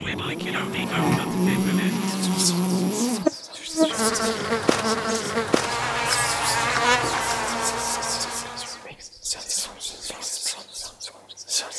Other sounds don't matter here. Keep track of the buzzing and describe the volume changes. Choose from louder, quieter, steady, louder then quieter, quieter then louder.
steady.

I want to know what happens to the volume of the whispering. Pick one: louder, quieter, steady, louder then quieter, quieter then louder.
steady.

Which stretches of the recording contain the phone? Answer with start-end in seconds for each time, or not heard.
not heard.